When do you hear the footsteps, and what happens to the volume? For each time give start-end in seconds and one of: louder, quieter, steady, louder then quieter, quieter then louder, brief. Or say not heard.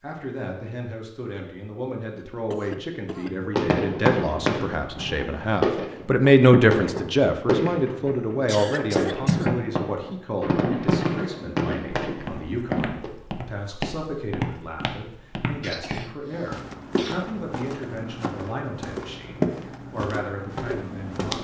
12.1-21.3 louder.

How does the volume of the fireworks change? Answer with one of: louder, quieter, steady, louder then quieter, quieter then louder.
steady.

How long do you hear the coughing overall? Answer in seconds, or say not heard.
4 s.